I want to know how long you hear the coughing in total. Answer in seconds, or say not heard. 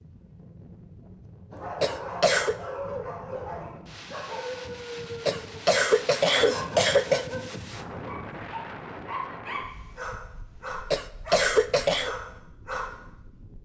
4 s.